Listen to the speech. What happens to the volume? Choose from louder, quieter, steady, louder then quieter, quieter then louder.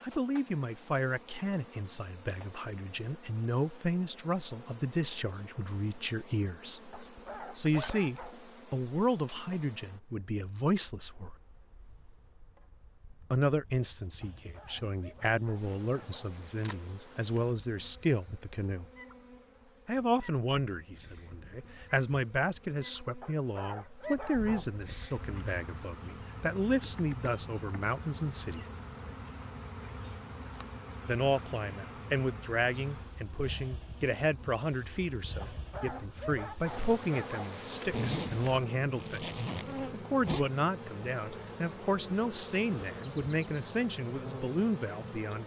steady.